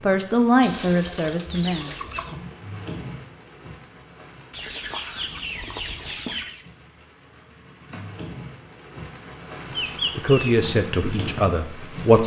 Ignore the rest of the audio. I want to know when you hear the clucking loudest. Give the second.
10 s.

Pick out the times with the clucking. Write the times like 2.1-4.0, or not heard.
0.6-2.4, 4.5-6.7, 9.7-10.7.